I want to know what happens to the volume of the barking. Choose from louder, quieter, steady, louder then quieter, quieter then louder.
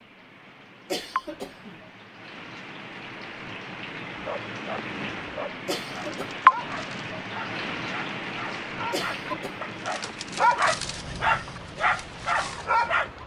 louder.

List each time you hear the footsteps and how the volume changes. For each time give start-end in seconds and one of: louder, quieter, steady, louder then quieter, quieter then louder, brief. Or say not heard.
not heard.